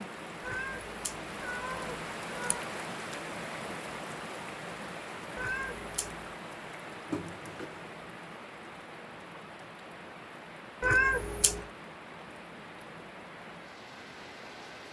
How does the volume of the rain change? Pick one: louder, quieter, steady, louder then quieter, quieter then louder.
quieter.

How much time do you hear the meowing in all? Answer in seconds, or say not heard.
4 s.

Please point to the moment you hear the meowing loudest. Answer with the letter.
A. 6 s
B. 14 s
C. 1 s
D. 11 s
D.